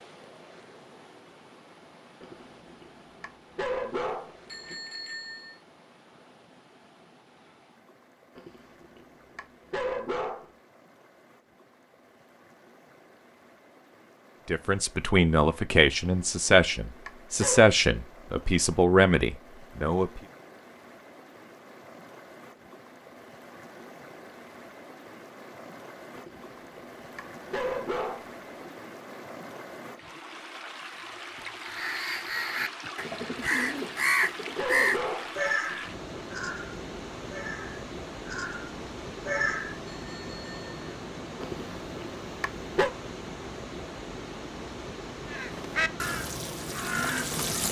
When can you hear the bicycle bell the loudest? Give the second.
5 s.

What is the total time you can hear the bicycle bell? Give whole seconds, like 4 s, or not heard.
2 s.